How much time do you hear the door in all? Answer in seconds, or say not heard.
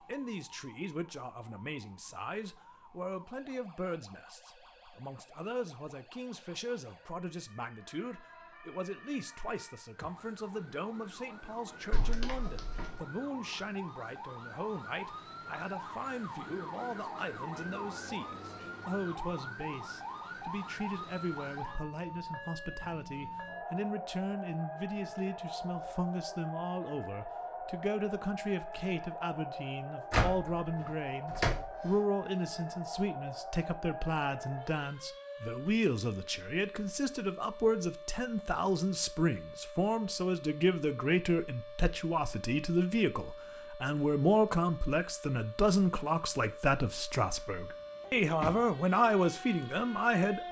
3 s.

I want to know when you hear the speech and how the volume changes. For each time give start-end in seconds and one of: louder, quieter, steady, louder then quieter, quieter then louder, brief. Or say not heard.
0.1-50.4 louder.